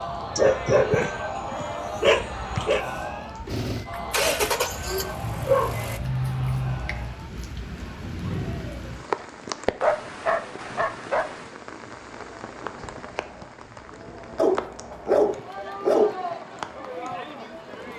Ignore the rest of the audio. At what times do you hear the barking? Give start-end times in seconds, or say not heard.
0.3-2.9, 5.2-7.2, 9.8-11.5, 14.3-16.4.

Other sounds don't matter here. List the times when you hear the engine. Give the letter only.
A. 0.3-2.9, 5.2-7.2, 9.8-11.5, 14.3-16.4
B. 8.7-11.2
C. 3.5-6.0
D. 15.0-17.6
C.